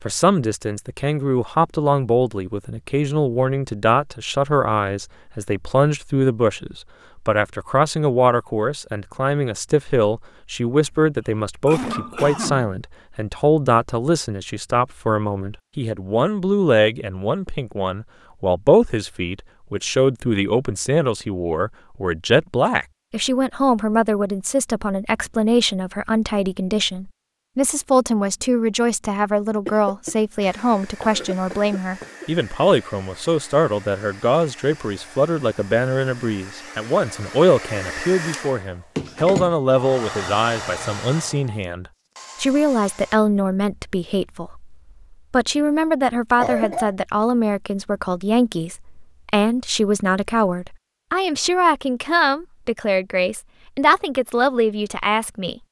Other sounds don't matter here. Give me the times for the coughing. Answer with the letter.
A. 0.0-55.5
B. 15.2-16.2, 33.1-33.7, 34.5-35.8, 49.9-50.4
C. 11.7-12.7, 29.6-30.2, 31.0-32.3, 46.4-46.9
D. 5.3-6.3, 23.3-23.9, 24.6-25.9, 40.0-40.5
C.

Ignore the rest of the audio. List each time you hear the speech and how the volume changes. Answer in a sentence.
You can hear the speech from 0.0 to 55.5 s, at a steady volume.